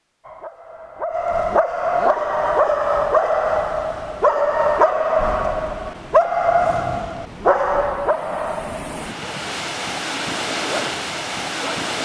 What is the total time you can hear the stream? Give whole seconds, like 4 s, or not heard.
10 s.